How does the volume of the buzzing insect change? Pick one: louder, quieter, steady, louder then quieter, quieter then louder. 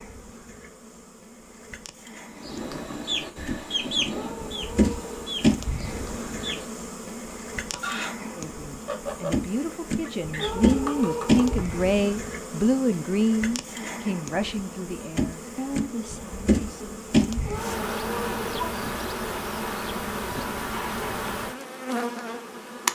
louder.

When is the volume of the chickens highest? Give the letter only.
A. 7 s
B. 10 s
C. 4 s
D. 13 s
C.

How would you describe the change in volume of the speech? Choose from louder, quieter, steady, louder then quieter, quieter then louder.
louder then quieter.